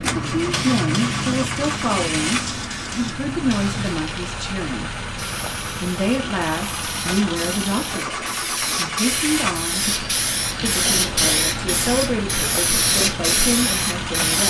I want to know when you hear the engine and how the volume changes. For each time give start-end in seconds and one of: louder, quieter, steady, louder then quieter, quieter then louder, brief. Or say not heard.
0.0-14.4 steady.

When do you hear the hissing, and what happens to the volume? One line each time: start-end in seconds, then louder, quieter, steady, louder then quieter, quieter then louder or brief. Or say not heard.
0.0-14.4 quieter then louder.